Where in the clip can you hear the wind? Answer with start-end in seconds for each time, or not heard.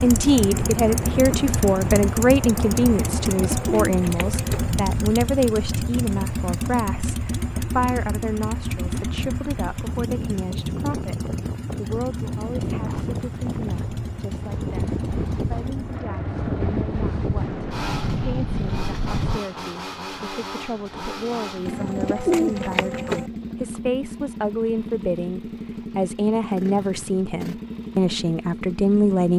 0.0-19.4.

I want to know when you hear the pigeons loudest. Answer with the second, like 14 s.
22 s.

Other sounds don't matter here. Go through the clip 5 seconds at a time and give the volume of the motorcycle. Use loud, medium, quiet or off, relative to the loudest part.
loud, loud, medium, medium, medium, medium.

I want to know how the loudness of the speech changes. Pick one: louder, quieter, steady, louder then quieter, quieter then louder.
quieter then louder.